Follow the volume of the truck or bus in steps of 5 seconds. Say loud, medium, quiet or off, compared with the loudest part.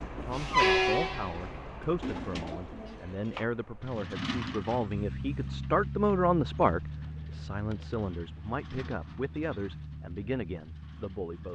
loud, medium, quiet.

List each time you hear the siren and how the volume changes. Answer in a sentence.
You can't hear the siren here.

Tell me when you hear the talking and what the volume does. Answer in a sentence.
You can hear the talking from 0.0 to 11.4 s, getting louder then quieter.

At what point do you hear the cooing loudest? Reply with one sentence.
The loudest moment of the cooing is at 2 seconds.